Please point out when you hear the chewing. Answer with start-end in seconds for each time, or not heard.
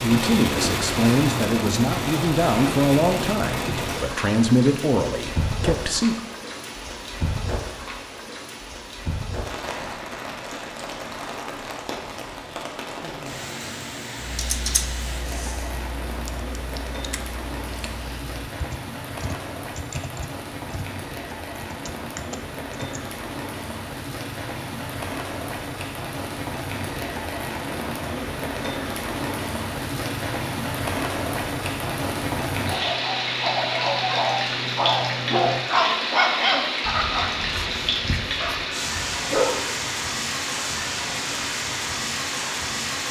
not heard.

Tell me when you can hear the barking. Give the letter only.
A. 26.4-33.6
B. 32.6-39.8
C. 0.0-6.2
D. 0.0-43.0
B.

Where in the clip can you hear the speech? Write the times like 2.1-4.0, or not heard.
0.0-6.2.